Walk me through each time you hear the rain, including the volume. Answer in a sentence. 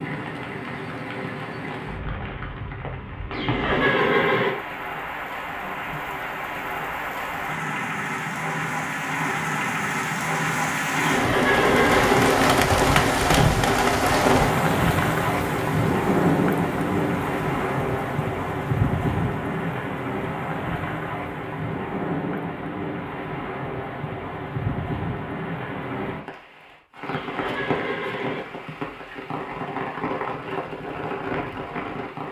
The rain can be heard from 0.0 to 32.2 s, getting louder then quieter.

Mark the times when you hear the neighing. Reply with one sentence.
The neighing can be heard from 3.3 to 4.5 s, from 10.9 to 12.3 s and from 27.1 to 28.4 s.